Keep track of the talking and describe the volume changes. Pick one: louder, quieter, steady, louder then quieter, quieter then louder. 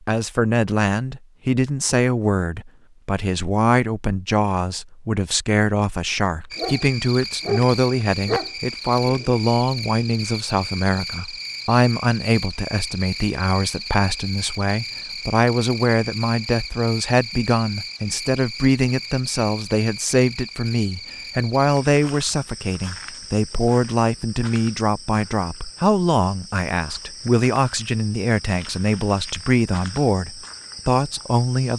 steady.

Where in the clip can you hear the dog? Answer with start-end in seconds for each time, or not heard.
6.5-9.3.